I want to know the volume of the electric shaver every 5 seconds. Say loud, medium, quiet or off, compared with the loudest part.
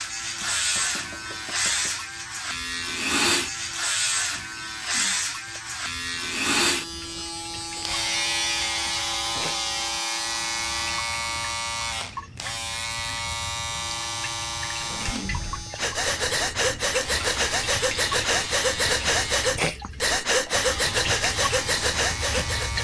loud, loud, loud, medium, medium.